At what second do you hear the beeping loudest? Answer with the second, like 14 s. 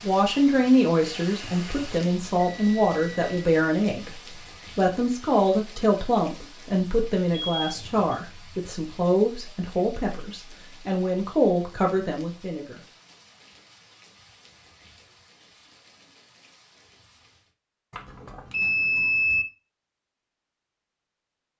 19 s.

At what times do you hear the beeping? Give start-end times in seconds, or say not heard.
1.0-3.4, 7.5-8.1, 17.9-19.4.